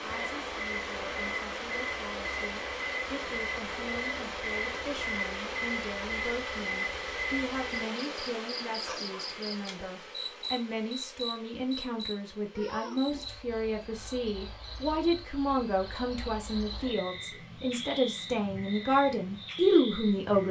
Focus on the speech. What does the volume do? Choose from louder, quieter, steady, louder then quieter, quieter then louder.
louder.